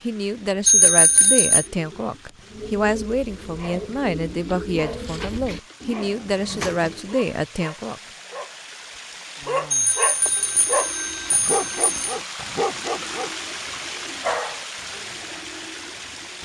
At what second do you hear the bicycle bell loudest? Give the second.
1 s.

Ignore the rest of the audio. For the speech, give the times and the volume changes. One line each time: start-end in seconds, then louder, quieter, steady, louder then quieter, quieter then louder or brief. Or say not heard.
0.0-8.0 steady.